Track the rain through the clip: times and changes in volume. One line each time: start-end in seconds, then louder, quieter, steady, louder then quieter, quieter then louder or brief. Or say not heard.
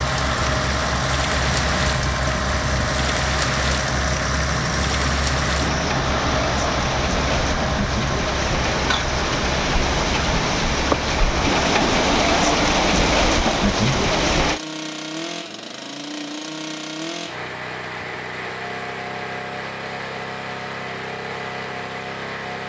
0.0-14.6 louder.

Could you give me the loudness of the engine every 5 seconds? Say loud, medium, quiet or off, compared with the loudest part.
loud, loud, medium, medium, medium.